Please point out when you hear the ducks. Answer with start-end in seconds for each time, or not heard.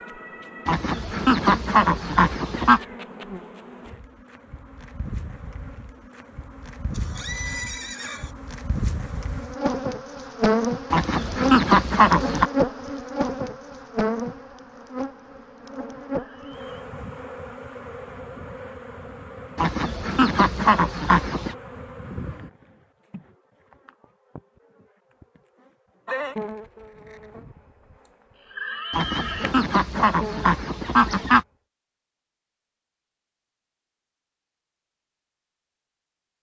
0.7-2.8, 10.9-12.5, 19.6-21.6, 28.9-31.4.